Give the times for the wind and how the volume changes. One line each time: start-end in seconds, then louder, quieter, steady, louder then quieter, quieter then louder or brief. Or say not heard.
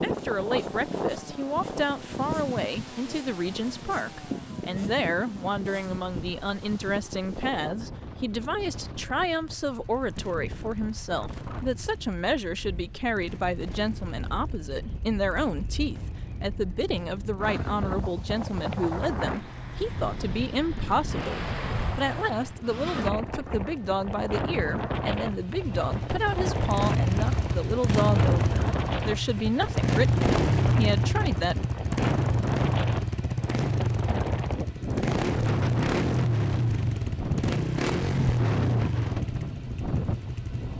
0.0-40.7 quieter then louder.